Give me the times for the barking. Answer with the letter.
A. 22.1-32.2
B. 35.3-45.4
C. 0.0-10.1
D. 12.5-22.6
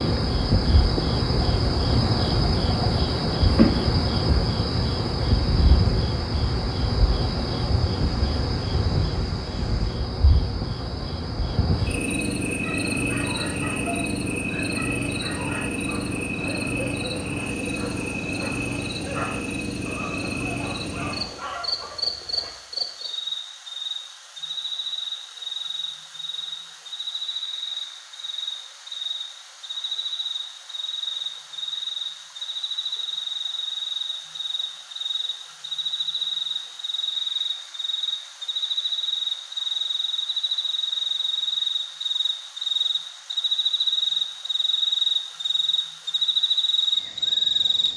D.